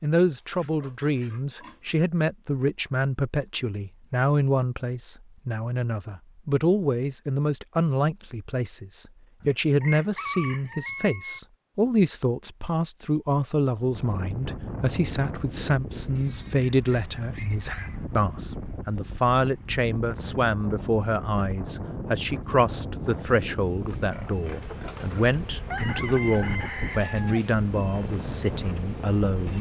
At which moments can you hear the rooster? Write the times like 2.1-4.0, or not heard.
9.4-11.4, 25.6-27.4.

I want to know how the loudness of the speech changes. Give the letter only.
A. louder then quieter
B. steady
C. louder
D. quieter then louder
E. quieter
B.